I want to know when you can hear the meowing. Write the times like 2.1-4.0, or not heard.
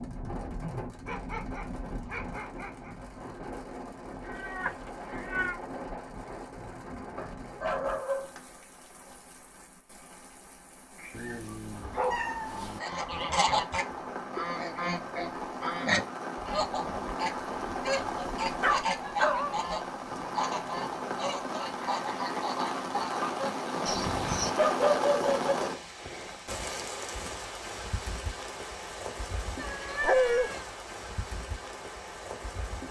4.2-5.6, 11.1-12.8, 29.6-30.7.